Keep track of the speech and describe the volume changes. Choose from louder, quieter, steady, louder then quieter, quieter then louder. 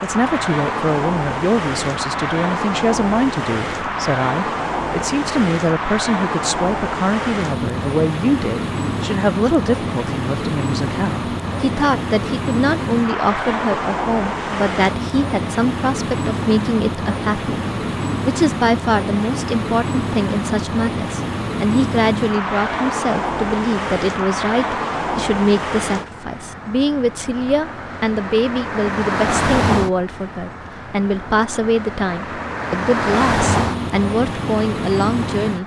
steady.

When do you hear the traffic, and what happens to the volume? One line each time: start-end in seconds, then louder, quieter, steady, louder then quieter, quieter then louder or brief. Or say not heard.
0.0-35.6 steady.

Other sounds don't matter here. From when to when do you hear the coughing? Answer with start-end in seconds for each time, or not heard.
not heard.